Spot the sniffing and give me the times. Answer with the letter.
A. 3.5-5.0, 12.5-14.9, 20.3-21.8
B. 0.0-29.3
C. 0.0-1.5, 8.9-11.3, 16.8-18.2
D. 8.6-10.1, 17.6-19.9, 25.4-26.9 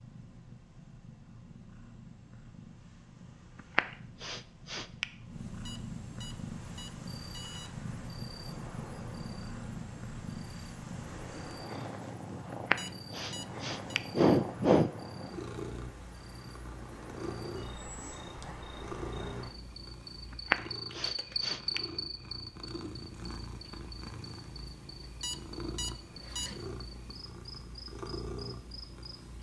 A.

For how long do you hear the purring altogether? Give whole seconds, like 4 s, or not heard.
29 s.